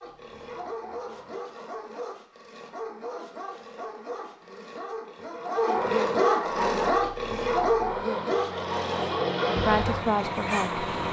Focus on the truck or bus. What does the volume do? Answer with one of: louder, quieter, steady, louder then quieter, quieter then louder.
louder.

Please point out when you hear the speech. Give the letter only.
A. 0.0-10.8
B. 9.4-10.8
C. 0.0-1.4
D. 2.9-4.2
B.